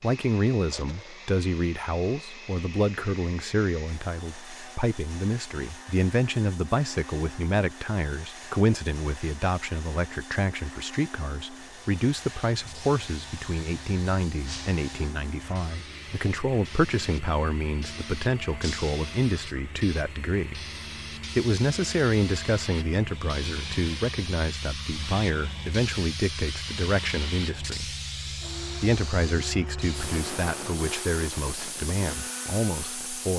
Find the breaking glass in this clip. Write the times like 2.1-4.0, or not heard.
14.4-14.9, 18.6-19.1.